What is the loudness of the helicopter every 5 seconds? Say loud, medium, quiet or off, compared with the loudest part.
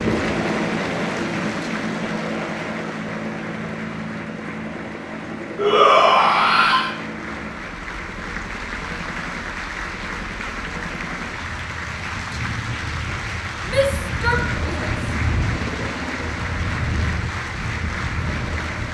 loud, medium, medium, loud.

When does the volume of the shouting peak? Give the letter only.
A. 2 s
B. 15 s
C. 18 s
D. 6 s
D.